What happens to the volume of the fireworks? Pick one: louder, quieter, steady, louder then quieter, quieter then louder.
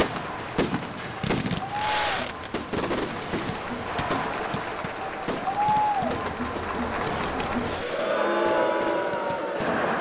quieter.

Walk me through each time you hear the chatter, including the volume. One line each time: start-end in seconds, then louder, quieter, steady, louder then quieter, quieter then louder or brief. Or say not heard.
0.0-9.9 louder.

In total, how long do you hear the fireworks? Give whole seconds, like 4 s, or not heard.
10 s.